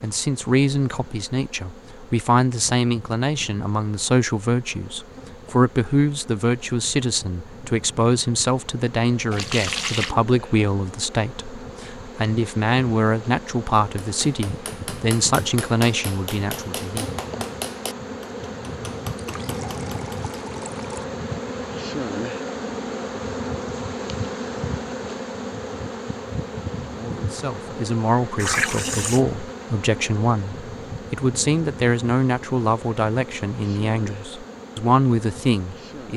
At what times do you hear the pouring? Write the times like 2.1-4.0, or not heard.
9.3-10.2, 19.1-21.1, 28.4-29.2.